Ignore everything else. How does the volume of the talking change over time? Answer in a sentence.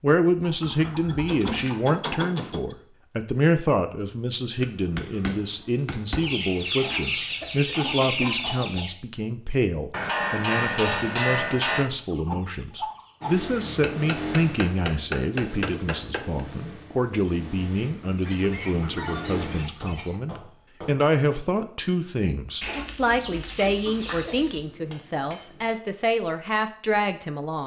The loudness of the talking stays about the same.